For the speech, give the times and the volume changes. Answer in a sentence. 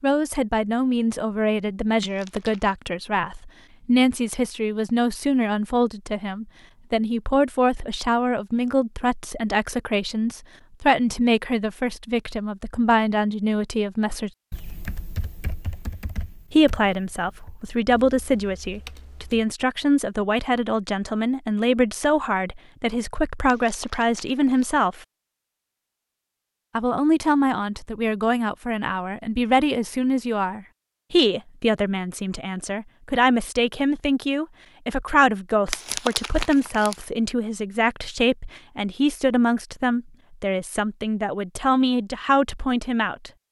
You can hear the speech from 0.0 to 14.3 s, at a steady volume; from 16.5 to 25.0 s, at a steady volume; and from 26.8 to 43.3 s, at a steady volume.